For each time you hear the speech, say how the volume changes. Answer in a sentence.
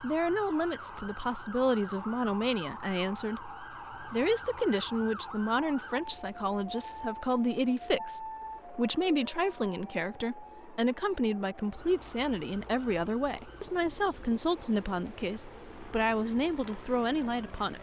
You can hear the speech from 0.0 to 17.7 s, at a steady volume.